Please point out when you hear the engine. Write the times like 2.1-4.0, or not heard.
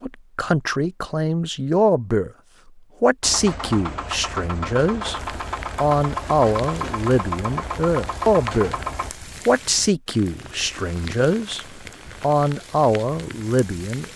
3.2-9.1.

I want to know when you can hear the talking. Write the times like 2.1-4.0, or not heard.
0.0-2.3, 3.0-5.2, 5.8-8.8, 9.4-14.1.